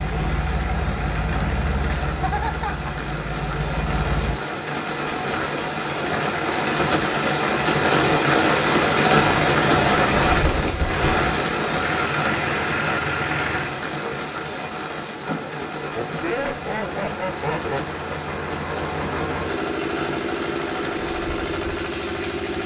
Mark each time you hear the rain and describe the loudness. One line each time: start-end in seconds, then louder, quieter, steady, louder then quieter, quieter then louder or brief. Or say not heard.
0.0-22.6 louder then quieter.